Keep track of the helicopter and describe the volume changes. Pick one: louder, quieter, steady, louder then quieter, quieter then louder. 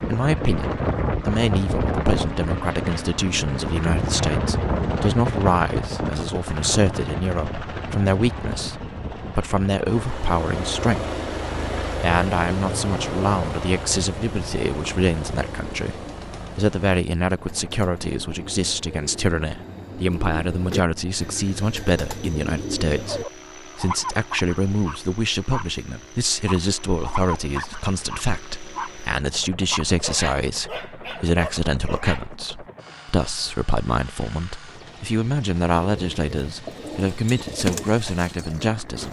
quieter.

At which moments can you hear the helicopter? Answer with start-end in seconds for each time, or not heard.
0.0-39.0.